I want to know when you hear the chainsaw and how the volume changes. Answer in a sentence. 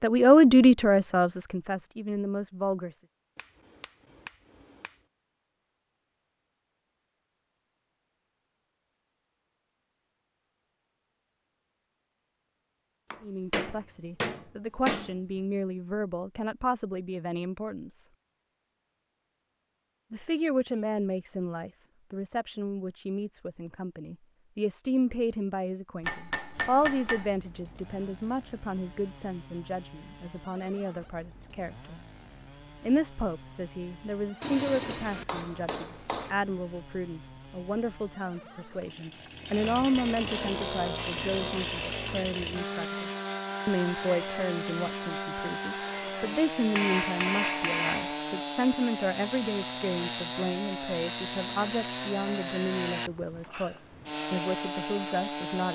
The chainsaw can be heard from 26.5 to 55.7 s, getting louder.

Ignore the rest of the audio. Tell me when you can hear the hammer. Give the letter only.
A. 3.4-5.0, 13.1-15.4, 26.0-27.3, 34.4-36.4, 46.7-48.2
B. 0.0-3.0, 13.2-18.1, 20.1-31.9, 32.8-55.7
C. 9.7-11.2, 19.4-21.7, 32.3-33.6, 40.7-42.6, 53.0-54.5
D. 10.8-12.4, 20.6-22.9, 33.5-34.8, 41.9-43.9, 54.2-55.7
A.